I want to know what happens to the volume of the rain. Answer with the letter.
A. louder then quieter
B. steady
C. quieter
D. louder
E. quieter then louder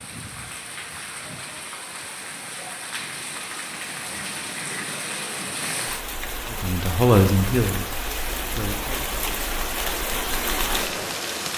D.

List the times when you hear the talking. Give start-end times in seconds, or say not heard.
6.5-9.1.